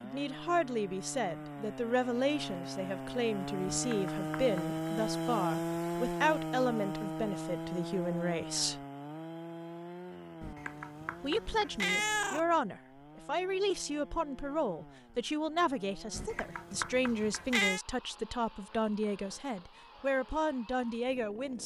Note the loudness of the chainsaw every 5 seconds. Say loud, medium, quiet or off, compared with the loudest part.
loud, loud, quiet, quiet, quiet.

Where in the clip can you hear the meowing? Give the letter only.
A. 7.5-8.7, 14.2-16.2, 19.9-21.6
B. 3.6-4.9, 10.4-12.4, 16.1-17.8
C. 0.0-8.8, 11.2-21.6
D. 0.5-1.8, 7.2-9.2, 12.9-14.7
B.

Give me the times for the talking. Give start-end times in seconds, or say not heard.
0.0-8.8, 11.2-21.6.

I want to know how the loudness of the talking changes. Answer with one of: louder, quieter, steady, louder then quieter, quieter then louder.
steady.